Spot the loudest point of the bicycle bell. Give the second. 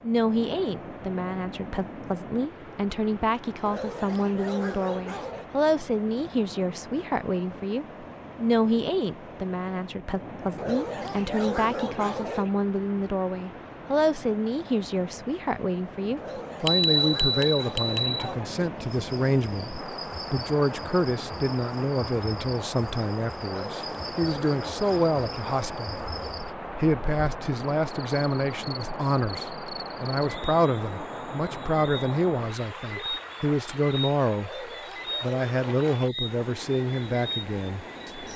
17 s.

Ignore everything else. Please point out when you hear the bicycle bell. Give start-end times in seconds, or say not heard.
16.6-18.2.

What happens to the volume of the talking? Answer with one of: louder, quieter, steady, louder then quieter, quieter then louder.
steady.